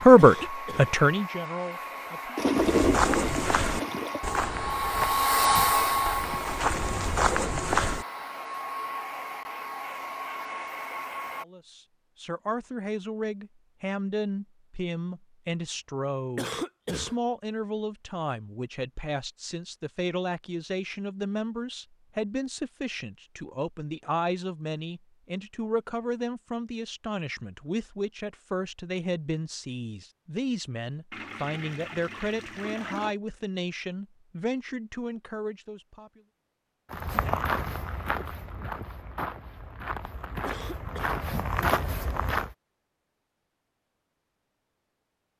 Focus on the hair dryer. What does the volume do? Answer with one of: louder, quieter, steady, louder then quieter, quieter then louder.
louder then quieter.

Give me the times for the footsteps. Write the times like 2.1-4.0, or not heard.
2.5-8.1, 36.9-42.5.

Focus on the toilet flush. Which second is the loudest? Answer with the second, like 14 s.
3 s.